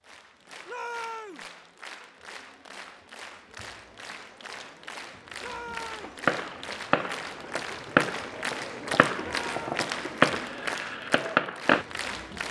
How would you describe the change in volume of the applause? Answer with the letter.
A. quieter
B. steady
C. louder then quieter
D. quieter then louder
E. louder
E.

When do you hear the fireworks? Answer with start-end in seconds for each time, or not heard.
6.0-11.8.